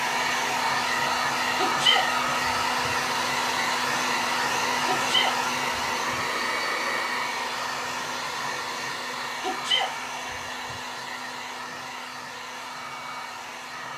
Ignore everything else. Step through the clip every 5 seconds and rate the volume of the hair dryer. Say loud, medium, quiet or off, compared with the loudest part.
loud, loud, medium.